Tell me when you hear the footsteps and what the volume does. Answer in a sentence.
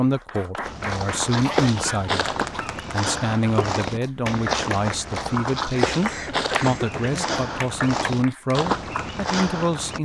The footsteps can be heard from 0.6 to 10.0 s, at a steady volume.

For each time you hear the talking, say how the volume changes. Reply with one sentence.
The talking can be heard briefly from 0.0 to 2.2 s; and from 2.9 to 10.0 s, at a steady volume.